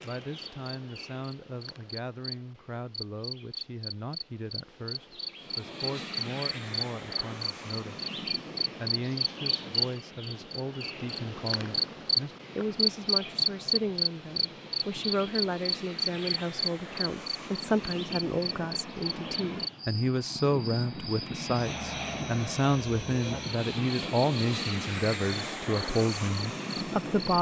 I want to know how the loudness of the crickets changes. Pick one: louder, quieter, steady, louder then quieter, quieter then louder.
louder then quieter.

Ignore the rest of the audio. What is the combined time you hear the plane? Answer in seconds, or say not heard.
22 s.